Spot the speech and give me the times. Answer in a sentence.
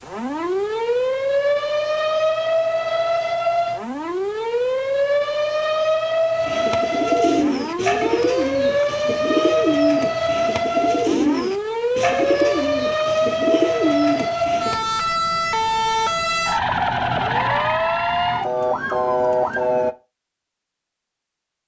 The speech can't be heard in this clip.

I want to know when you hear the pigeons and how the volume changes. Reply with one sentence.
You can hear the pigeons from 6.3 to 14.8 s, at a steady volume.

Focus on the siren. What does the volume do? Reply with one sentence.
The volume of the siren stays about the same.